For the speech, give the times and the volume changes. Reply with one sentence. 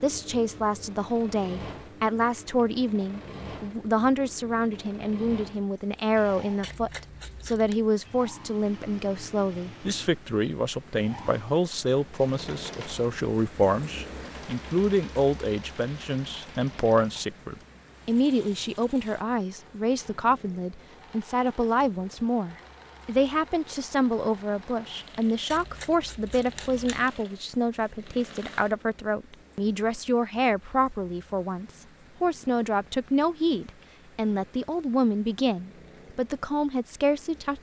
The speech can be heard from 0.0 to 37.5 s, at a steady volume.